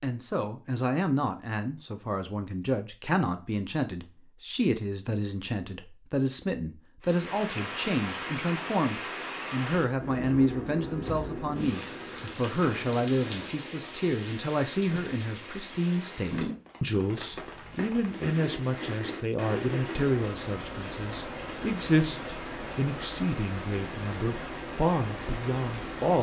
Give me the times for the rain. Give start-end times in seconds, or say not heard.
7.0-26.1.